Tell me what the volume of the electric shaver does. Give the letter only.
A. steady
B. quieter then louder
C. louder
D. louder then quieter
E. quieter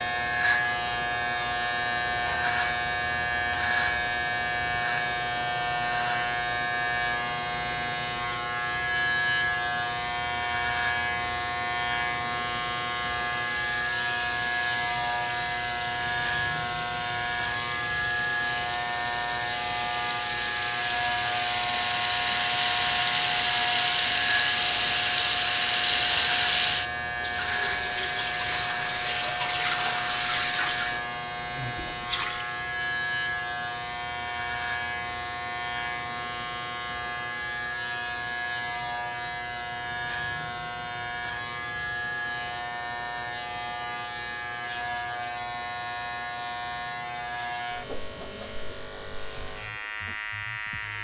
E.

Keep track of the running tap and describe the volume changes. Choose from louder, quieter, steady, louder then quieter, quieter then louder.
louder.